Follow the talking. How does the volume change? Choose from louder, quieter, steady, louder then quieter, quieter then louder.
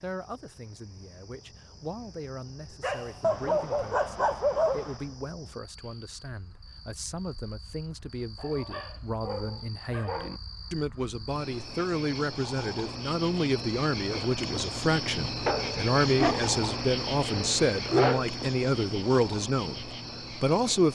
louder.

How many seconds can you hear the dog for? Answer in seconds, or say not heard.
7 s.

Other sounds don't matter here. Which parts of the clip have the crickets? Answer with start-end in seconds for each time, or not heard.
0.0-20.9.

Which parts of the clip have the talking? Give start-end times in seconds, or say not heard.
0.0-20.9.